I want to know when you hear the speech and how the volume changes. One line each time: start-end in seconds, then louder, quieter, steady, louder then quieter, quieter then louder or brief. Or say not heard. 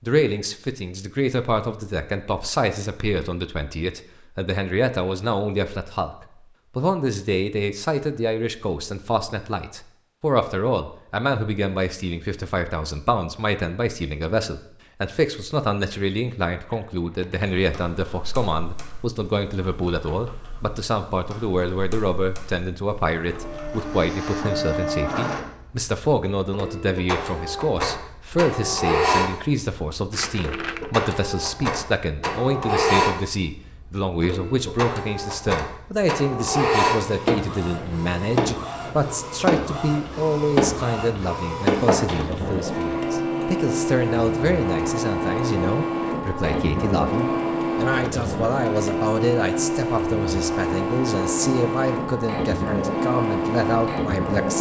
0.0-54.5 steady.